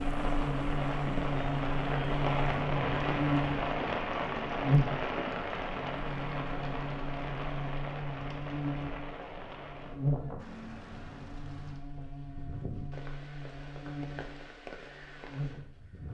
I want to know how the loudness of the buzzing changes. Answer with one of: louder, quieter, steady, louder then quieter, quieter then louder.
quieter.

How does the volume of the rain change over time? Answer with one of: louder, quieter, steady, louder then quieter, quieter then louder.
quieter.